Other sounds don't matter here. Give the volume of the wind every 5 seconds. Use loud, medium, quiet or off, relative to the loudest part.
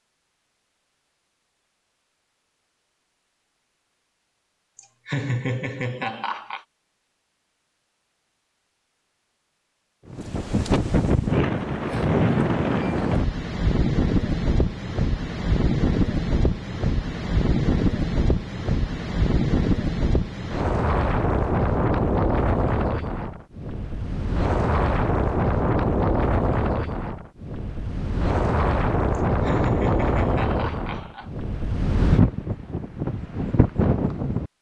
off, off, loud, loud, loud, loud, loud.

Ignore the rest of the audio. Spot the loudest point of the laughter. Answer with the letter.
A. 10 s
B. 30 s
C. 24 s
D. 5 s
D.